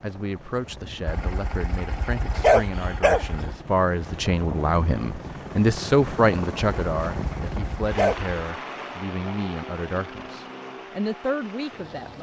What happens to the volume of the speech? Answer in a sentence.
The volume of the speech goes up, then down.